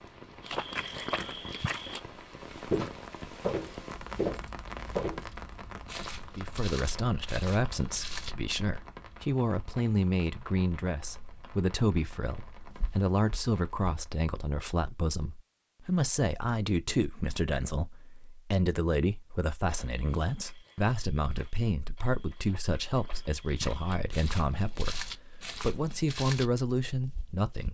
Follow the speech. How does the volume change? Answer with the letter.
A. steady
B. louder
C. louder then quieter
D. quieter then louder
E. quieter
A.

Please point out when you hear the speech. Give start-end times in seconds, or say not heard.
6.3-27.6.